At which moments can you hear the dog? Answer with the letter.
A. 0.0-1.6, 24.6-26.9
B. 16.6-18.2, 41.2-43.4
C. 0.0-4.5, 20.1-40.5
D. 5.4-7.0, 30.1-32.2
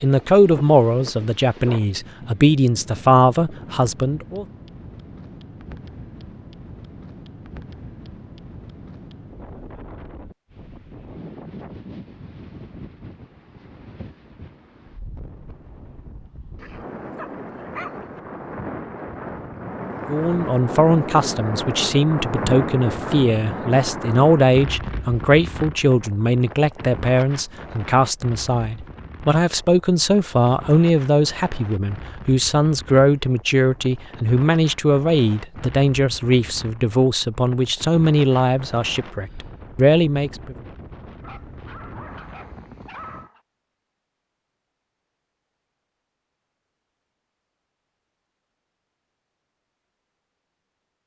B.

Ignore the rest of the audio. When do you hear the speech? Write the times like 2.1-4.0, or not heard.
0.0-4.5, 20.1-40.5.